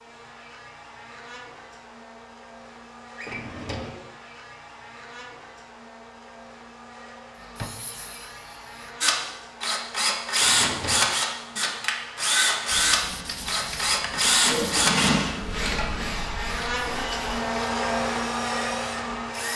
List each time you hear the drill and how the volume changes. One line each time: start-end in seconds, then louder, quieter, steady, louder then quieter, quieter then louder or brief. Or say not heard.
9.0-19.5 quieter.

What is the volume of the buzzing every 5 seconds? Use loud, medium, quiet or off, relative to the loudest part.
quiet, quiet, quiet, loud.